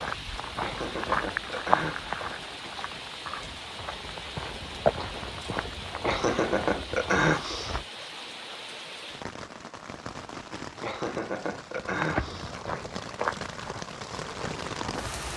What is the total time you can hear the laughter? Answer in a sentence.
The laughter can be heard for 5 seconds in total.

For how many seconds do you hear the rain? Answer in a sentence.
The rain can be heard for 15 seconds in total.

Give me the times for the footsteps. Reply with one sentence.
You can hear the footsteps from 0.0 to 7.8 s and from 11.8 to 15.2 s.